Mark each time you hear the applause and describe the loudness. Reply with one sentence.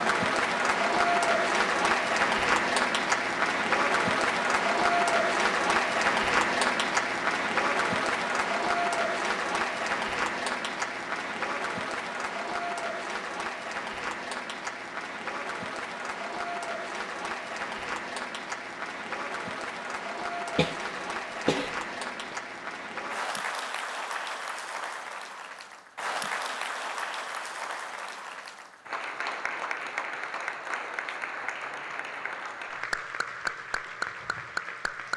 You can hear the applause from 0.0 to 35.1 s, getting quieter.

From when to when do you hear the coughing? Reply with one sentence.
You can hear the coughing from 20.6 to 22.4 s.